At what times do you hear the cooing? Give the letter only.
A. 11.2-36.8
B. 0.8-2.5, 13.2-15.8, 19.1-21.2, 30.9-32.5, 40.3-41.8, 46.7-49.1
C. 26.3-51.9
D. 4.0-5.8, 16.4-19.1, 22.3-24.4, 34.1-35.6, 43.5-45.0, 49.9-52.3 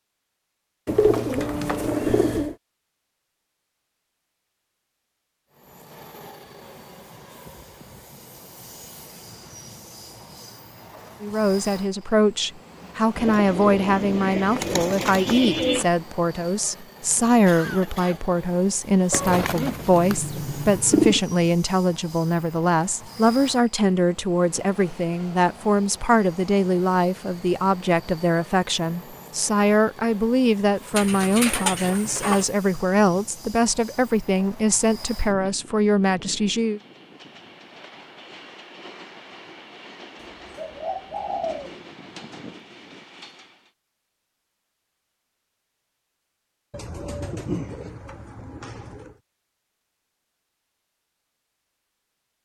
B.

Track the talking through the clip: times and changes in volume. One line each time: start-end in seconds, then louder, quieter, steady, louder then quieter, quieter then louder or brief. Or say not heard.
11.2-36.8 steady.